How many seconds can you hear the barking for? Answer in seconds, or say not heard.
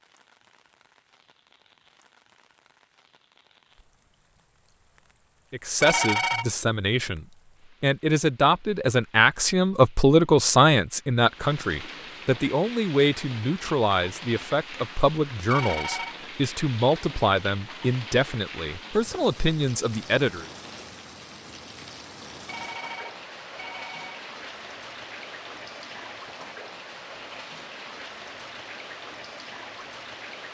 not heard.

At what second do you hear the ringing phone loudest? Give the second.
6 s.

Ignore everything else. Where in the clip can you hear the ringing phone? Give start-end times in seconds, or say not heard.
5.8-6.5, 15.4-16.1, 22.4-24.2.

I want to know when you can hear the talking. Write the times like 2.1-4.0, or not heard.
5.5-20.4.